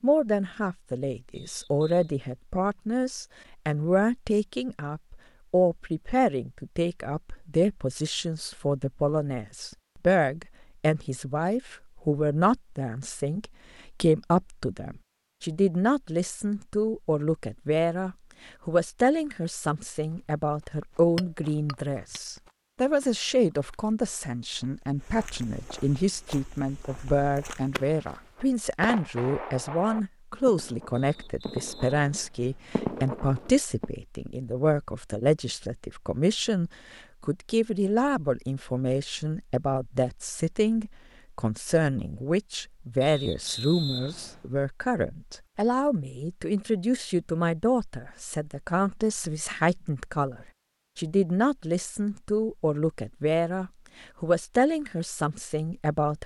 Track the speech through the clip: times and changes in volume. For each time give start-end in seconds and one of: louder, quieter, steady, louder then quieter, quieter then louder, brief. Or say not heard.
0.0-56.2 steady.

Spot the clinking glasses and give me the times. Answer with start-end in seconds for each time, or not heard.
21.1-22.2.